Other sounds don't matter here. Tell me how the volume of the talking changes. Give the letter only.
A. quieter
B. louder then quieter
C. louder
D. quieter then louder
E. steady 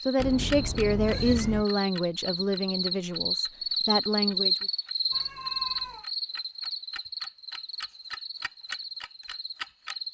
D.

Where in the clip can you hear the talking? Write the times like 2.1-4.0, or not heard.
0.1-4.7.